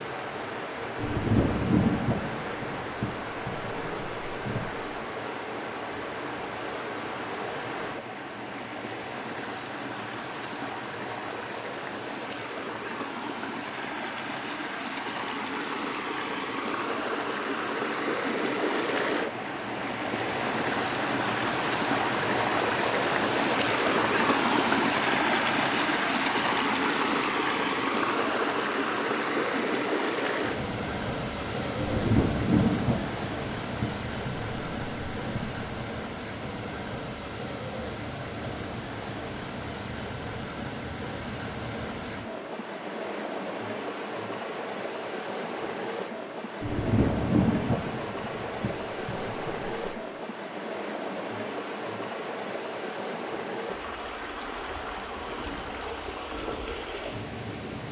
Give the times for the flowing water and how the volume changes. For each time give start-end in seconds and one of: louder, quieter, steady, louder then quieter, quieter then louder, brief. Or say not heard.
0.0-57.8 louder then quieter.